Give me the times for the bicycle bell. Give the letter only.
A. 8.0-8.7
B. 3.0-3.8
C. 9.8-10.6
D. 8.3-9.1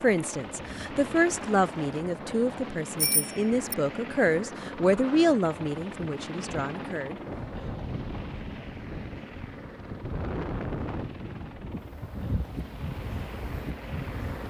B.